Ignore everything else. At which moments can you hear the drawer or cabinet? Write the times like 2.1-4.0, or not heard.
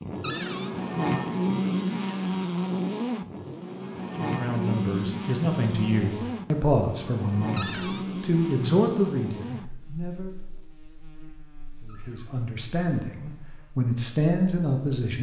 0.2-0.7, 7.5-8.1, 11.8-12.3.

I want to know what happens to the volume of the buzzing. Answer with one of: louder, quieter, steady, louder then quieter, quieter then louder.
quieter.